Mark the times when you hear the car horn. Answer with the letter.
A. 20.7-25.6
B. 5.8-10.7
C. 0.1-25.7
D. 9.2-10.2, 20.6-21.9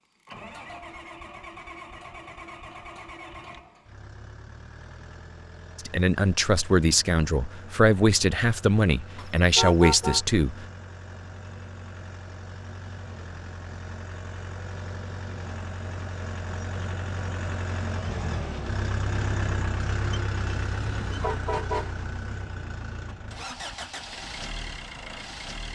D.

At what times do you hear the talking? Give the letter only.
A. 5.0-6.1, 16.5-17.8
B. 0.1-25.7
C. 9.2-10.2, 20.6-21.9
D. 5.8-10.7
D.